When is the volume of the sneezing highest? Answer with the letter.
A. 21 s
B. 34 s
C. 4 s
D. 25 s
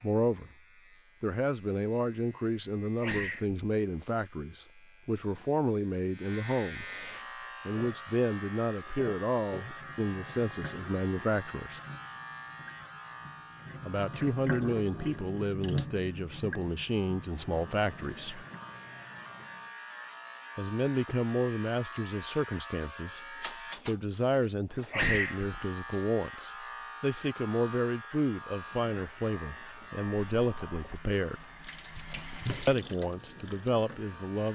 D.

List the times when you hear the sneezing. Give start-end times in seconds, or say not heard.
3.0-4.1, 24.7-26.0.